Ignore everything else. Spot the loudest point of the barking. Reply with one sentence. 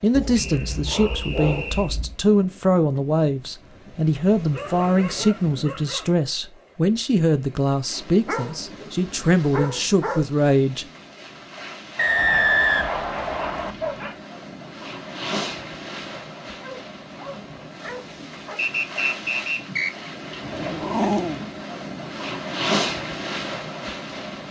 The loudest moment of the barking is at 21 seconds.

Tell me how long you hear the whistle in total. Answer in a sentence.
You can hear the whistle for 5 seconds altogether.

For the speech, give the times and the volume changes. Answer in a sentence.
You can hear the speech from 0.0 to 10.8 s, at a steady volume.